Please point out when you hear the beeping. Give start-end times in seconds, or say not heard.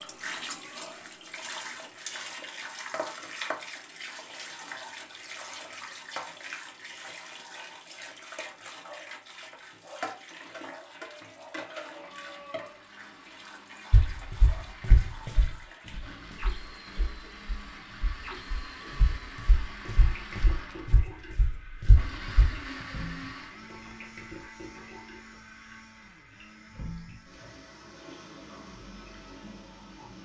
not heard.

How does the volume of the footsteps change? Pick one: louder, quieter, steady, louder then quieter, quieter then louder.
quieter then louder.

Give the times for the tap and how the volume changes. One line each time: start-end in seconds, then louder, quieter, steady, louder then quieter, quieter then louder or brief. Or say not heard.
0.0-30.2 quieter.